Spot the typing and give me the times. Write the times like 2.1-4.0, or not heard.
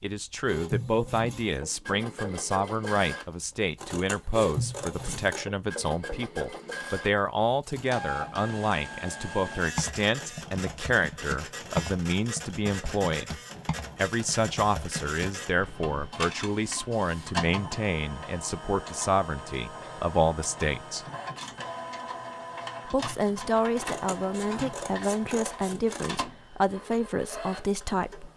9.7-16.1.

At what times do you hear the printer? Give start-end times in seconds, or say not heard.
0.1-28.3.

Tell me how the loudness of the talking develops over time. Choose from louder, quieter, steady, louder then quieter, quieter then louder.
steady.